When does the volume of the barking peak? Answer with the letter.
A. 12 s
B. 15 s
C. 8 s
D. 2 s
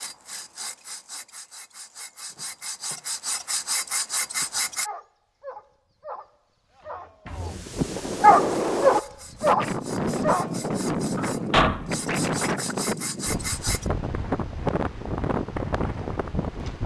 C.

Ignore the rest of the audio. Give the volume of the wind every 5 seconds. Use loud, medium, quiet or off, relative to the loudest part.
off, loud, loud, loud.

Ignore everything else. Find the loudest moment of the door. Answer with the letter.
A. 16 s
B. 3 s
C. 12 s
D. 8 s
C.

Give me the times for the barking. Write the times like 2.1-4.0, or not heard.
4.4-11.9.